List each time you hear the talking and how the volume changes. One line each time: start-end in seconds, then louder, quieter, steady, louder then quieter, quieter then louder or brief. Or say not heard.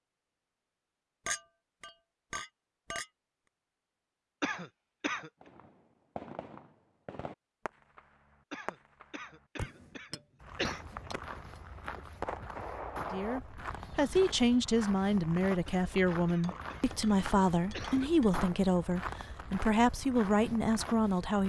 13.1-21.4 steady.